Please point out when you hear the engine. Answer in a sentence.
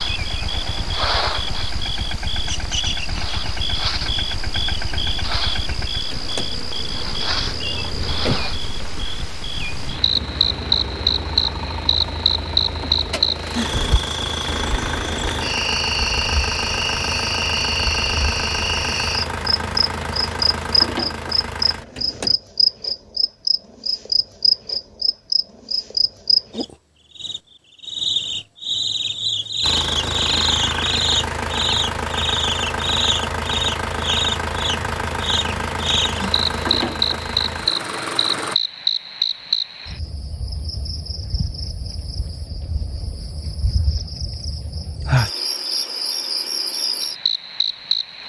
The engine can be heard from 0.0 to 22.4 s and from 29.6 to 38.5 s.